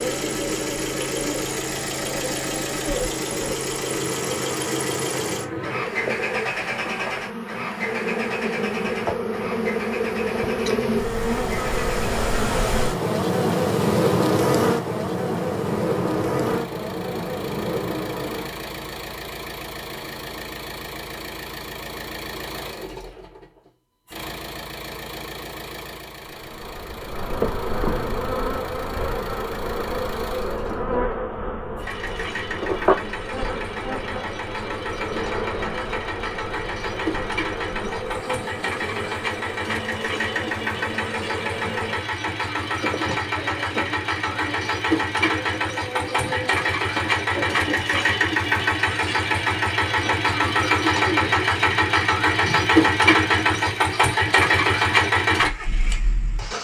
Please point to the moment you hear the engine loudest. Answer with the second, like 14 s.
53 s.